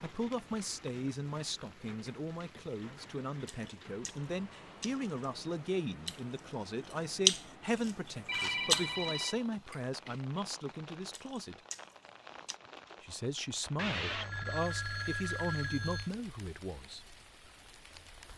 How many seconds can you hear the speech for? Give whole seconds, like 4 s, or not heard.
16 s.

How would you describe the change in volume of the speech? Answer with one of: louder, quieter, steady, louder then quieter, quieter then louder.
steady.